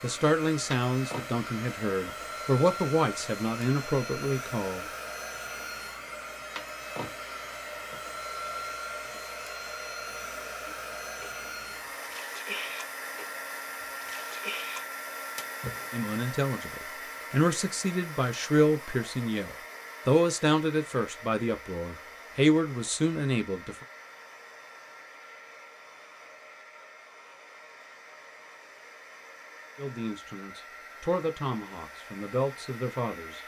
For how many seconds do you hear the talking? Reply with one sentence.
You can hear the talking for 16 seconds altogether.